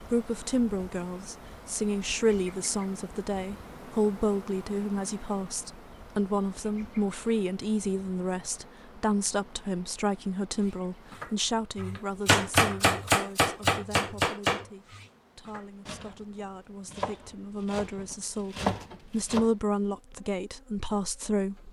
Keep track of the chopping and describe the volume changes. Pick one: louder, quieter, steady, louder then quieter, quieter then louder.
quieter then louder.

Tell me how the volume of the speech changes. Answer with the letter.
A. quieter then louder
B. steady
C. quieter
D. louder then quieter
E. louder
A.